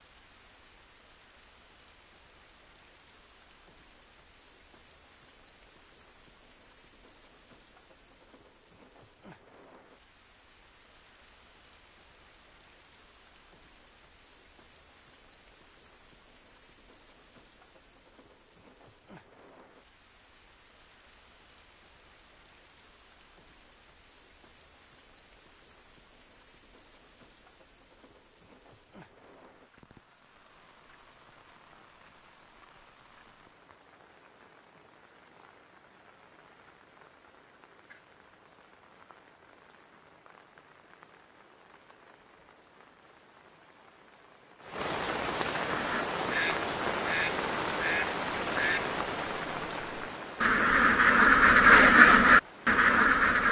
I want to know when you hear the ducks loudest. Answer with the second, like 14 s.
52 s.